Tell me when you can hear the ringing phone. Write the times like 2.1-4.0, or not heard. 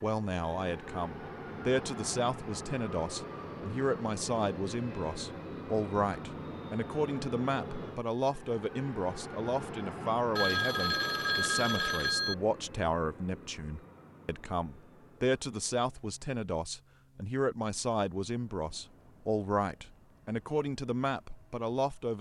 10.3-12.3.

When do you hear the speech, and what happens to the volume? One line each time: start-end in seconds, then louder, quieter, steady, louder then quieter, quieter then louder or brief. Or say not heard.
0.0-22.1 steady.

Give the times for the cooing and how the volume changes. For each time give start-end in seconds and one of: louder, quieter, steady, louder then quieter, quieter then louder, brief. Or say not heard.
not heard.